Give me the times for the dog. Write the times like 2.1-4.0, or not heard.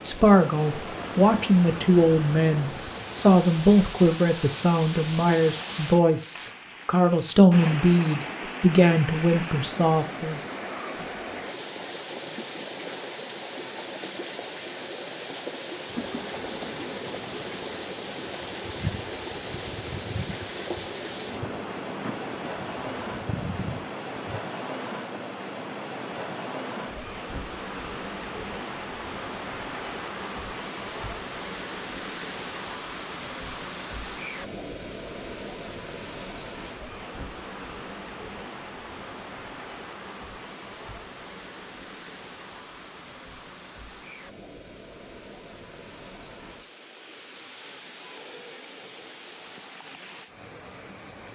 not heard.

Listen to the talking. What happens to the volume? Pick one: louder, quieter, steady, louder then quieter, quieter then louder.
steady.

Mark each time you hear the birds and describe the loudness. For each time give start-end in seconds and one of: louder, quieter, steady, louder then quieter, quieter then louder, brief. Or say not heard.
not heard.